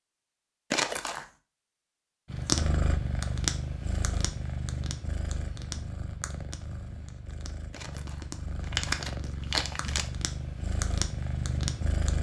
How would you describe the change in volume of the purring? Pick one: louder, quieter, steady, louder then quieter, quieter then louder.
quieter then louder.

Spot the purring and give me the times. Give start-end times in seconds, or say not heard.
2.3-12.1.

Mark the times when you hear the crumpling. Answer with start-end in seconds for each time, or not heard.
0.7-1.2, 7.7-10.1.